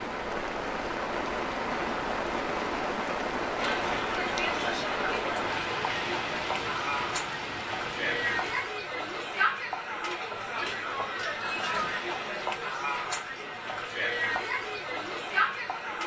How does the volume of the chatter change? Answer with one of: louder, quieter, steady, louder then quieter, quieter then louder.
steady.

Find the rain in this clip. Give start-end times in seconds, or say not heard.
0.0-8.7.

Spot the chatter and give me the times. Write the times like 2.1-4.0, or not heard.
3.5-16.0.